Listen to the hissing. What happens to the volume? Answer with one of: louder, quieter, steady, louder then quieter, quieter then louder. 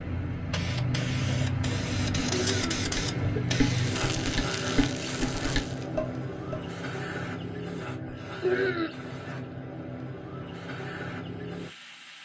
quieter.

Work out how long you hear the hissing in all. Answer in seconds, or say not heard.
12 s.